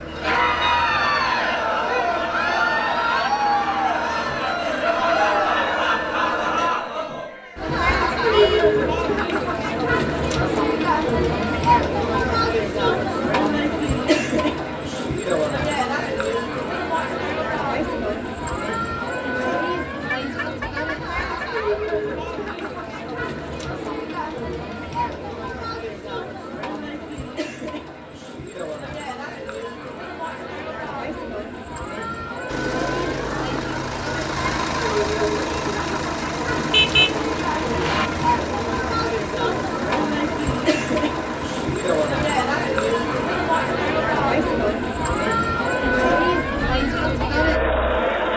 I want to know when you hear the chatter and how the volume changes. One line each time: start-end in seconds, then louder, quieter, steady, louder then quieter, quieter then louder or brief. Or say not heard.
0.1-48.3 quieter then louder.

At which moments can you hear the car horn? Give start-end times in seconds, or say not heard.
8.3-8.8, 20.1-21.6, 36.6-38.1.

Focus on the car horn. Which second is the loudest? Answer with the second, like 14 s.
37 s.